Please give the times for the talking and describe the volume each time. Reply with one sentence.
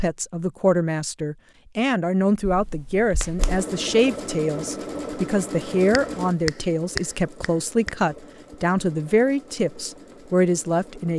The talking can be heard from 0.0 to 11.1 s, at a steady volume.